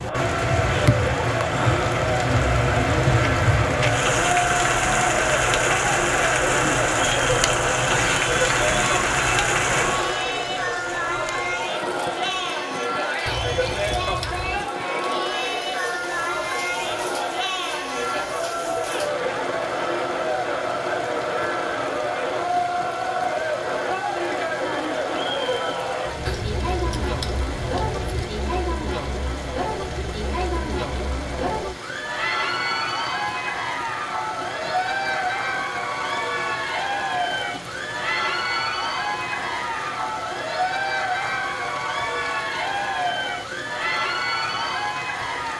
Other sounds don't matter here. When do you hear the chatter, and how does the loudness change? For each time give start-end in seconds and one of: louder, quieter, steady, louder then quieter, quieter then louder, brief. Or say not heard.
0.0-45.5 steady.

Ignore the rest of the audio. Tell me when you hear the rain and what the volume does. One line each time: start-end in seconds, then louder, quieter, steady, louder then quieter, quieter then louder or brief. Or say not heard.
0.0-45.5 quieter.